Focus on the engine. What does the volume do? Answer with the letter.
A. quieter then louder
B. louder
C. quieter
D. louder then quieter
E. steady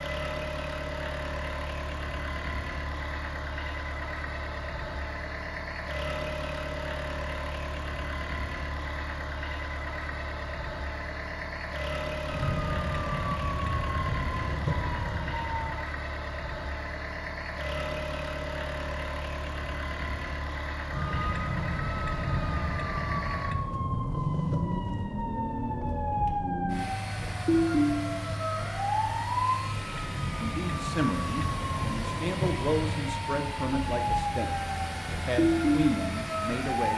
E.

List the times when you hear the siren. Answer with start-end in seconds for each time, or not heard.
12.2-15.8, 20.9-36.9.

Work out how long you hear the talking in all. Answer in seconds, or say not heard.
6 s.